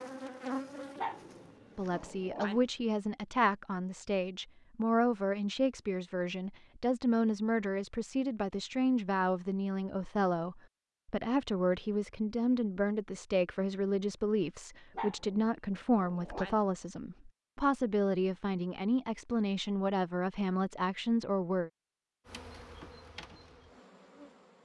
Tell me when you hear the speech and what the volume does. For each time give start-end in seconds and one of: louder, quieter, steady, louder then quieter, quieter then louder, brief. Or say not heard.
1.8-21.7 steady.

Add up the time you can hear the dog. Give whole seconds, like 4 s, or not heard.
3 s.